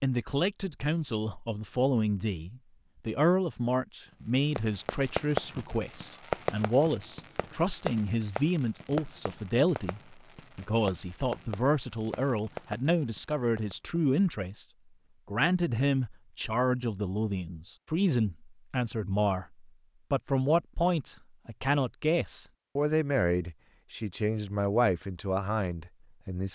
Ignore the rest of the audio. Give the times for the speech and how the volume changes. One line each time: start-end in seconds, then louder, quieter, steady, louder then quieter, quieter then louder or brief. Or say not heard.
0.0-14.7 steady
15.2-26.5 steady.